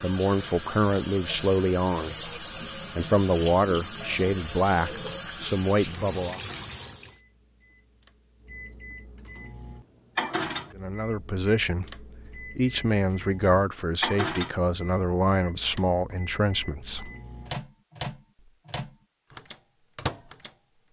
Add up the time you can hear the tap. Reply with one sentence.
The tap can be heard for 7 seconds in total.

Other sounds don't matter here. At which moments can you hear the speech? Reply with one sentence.
You can hear the speech from 0.0 to 6.4 s and from 10.8 to 17.1 s.